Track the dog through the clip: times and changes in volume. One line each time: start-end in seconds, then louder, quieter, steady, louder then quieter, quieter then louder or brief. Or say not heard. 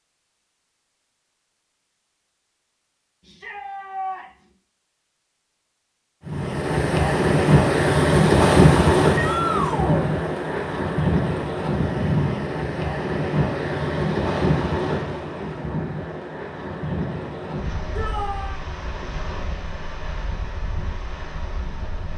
not heard.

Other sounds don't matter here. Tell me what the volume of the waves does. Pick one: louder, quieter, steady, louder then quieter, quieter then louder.
quieter.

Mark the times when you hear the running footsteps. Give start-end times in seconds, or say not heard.
not heard.